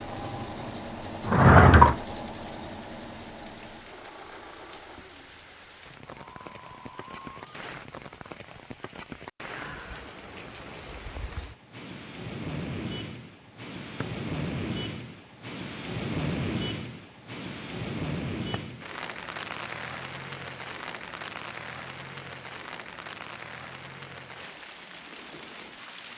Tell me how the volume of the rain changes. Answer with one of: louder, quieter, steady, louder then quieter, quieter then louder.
louder then quieter.